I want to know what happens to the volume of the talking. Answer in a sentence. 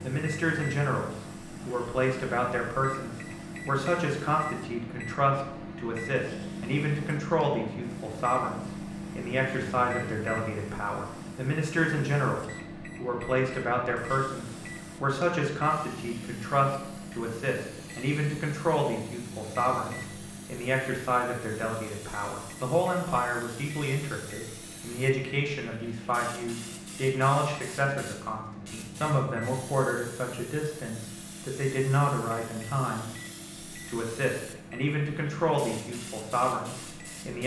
The volume of the talking stays about the same.